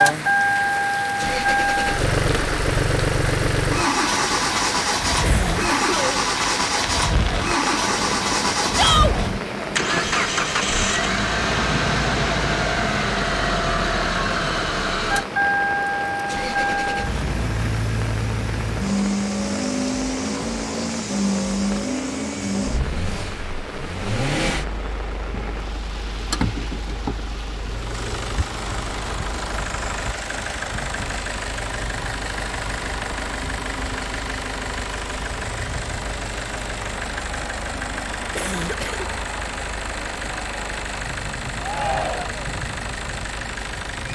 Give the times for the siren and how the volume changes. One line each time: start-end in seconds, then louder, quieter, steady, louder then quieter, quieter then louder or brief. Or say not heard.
not heard.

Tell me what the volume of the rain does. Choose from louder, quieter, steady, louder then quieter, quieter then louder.
quieter.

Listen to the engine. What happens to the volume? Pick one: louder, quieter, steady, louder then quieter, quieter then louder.
quieter.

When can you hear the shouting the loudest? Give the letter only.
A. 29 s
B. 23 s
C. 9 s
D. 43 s
C.